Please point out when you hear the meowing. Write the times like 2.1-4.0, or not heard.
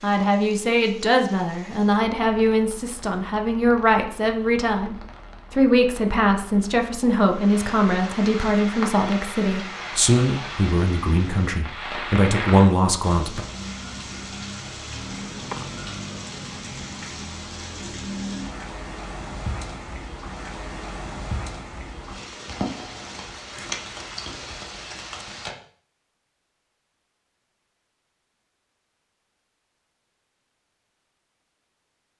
15.2-17.1.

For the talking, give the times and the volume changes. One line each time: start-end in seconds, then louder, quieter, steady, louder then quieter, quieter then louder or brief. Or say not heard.
0.0-13.4 steady.